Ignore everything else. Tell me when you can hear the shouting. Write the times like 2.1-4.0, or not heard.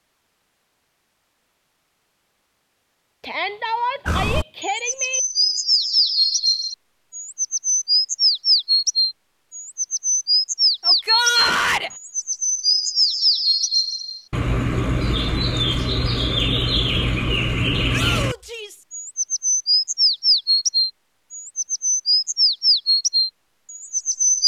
3.2-5.2, 10.8-11.9, 17.9-18.9.